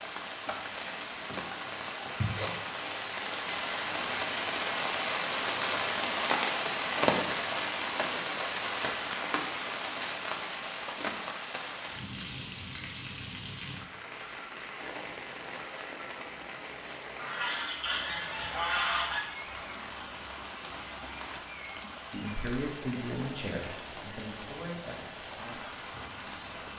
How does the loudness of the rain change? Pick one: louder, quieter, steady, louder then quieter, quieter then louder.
quieter.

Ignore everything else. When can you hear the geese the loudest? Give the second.
19 s.